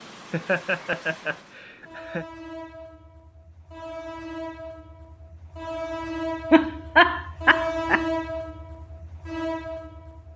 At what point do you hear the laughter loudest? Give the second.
7 s.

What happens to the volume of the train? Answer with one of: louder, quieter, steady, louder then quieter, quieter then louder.
louder.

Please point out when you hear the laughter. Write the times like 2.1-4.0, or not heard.
0.3-2.2, 6.5-8.0.